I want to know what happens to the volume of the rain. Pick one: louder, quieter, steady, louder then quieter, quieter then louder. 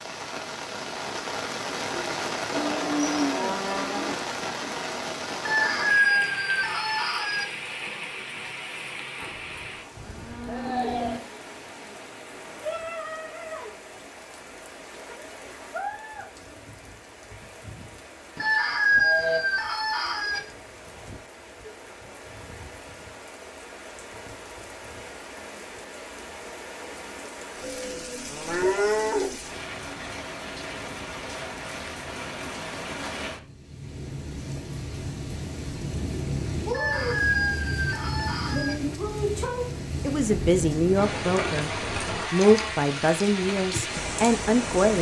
quieter then louder.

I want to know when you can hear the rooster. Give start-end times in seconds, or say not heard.
5.5-7.5, 18.4-20.4, 36.7-38.8.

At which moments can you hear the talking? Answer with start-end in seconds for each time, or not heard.
40.0-41.7, 42.3-44.9.